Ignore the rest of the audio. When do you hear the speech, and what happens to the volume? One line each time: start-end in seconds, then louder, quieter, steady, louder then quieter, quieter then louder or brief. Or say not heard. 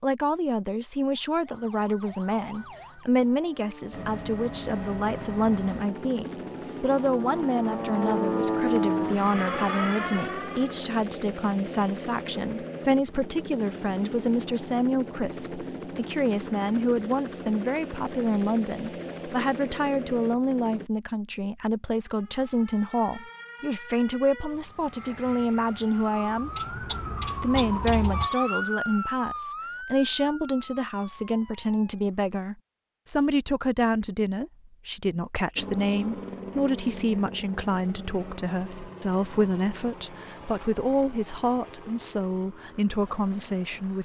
0.0-26.6 steady
27.4-44.0 steady.